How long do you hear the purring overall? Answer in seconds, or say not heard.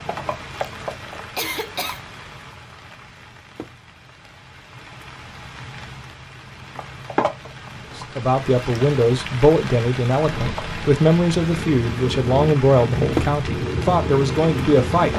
5 s.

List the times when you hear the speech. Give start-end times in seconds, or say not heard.
8.0-15.1.